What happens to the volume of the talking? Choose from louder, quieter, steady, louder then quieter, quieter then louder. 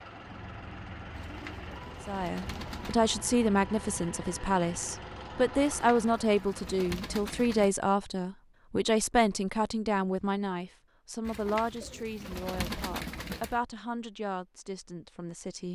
quieter.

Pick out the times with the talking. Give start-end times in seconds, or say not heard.
2.0-15.6.